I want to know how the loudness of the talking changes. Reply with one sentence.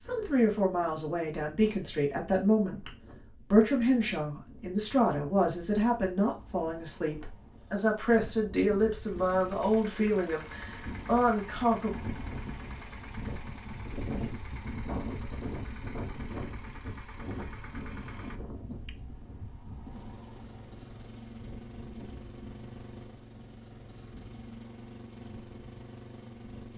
The volume of the talking stays about the same.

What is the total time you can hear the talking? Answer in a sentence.
The talking can be heard for 12 seconds in total.